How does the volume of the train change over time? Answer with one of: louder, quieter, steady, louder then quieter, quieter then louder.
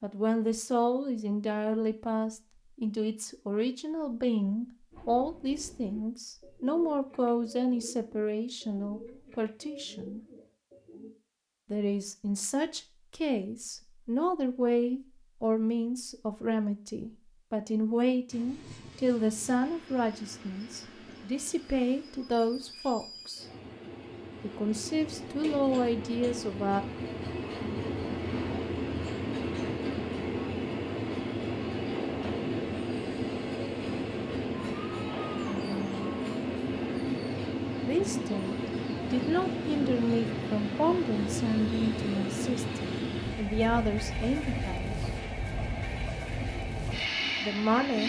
louder.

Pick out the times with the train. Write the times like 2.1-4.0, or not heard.
18.3-48.0.